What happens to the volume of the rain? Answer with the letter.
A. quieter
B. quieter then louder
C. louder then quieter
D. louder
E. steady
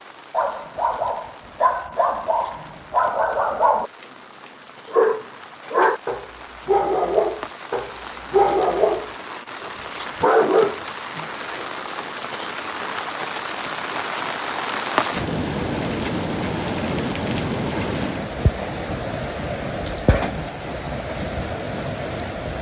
D.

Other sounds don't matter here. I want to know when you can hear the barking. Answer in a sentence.
You can hear the barking from 0.3 to 11.5 s.